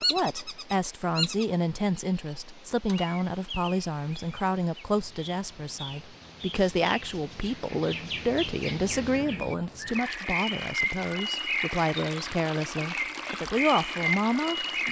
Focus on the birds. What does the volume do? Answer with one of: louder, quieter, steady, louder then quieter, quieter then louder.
quieter then louder.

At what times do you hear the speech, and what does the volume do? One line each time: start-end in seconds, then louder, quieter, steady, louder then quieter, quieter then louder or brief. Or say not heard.
0.1-14.8 steady.